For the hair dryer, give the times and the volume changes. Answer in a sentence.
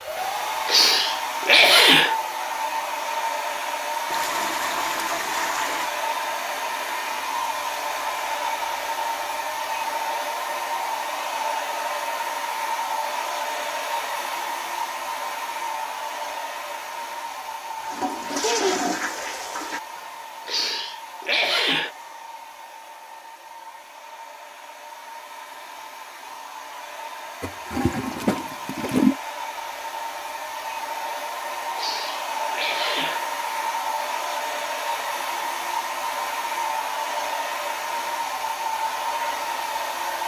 The hair dryer can be heard from 0.0 to 40.2 s, getting quieter then louder.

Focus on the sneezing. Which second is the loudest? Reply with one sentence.
The loudest moment of the sneezing is at 2 seconds.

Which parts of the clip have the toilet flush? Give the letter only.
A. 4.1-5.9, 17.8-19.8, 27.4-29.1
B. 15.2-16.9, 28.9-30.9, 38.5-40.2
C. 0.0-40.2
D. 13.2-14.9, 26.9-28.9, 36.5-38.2
A.